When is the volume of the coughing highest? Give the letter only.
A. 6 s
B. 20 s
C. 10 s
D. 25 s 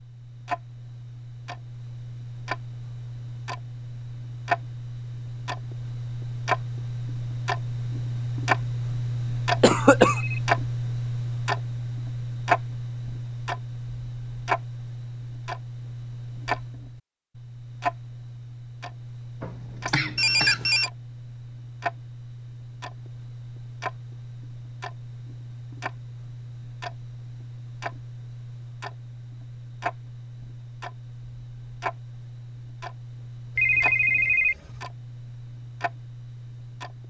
C.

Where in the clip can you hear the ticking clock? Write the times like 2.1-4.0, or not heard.
0.0-37.0.